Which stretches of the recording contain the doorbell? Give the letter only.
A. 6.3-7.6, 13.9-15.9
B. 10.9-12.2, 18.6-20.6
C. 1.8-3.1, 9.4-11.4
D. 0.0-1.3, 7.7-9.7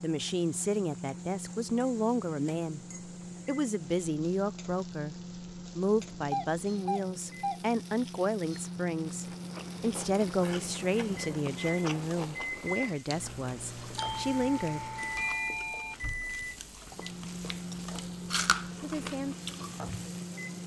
A.